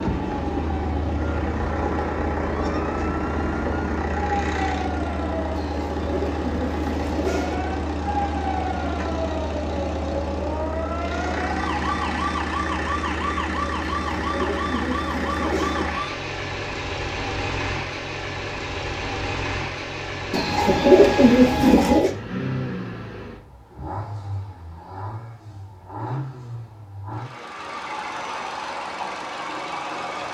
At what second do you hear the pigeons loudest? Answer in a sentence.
The volume of the pigeons peaks at 21 seconds.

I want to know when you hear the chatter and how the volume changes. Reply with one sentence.
You can't hear the chatter here.